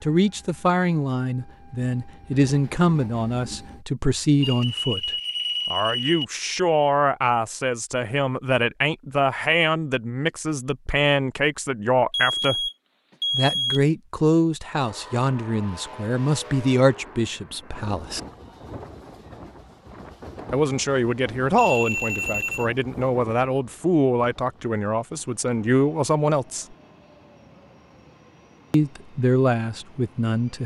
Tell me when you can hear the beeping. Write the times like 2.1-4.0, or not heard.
4.4-6.2, 12.1-13.8, 21.6-22.6.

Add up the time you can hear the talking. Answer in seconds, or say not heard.
26 s.